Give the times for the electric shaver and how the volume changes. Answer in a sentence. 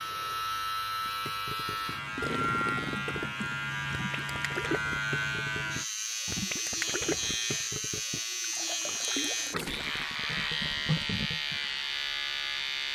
You can hear the electric shaver from 0.0 to 12.9 s, at a steady volume.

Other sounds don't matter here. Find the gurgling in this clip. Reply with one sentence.
You can hear the gurgling from 1.1 to 11.6 s.